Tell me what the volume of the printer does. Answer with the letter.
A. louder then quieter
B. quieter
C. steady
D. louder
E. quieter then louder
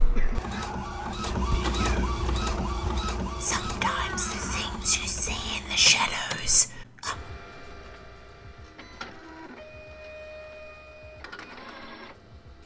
B.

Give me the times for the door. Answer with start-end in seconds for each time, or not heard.
3.9-4.8.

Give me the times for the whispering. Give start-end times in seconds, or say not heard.
0.2-7.2.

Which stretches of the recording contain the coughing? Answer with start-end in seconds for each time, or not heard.
0.1-0.7.